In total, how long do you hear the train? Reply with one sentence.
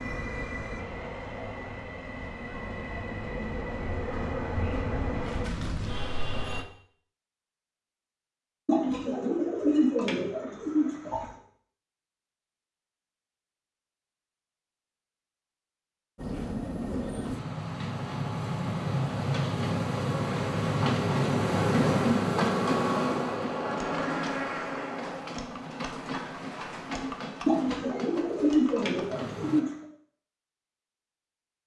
You can hear the train for 20 seconds altogether.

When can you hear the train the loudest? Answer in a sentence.
The loudest moment of the train is at 22 seconds.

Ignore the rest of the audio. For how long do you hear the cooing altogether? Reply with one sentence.
You can hear the cooing for 5 seconds altogether.